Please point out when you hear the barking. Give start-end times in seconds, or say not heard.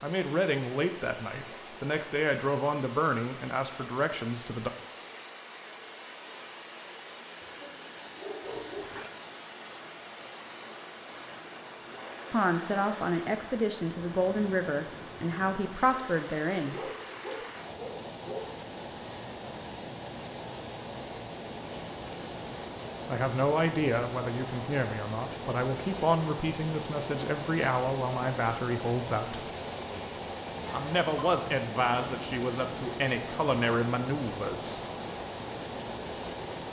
7.4-9.1, 16.6-18.5, 30.6-31.4.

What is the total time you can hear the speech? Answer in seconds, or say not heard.
20 s.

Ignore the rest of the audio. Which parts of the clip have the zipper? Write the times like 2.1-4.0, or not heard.
8.4-9.1.